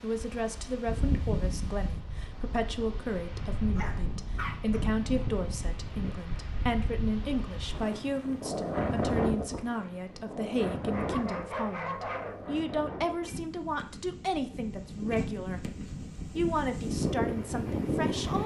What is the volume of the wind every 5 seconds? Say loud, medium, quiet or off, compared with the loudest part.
medium, loud, medium, loud.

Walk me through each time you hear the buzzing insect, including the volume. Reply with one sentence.
You can't hear the buzzing insect here.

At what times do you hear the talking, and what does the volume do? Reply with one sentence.
You can hear the talking from 0.0 to 18.4 s, at a steady volume.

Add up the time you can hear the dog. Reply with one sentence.
You can hear the dog for 3 seconds altogether.